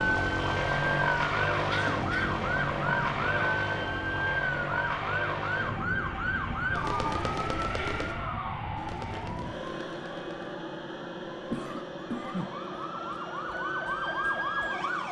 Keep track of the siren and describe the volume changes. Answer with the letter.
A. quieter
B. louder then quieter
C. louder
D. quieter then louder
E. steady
D.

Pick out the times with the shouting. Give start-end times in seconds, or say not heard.
not heard.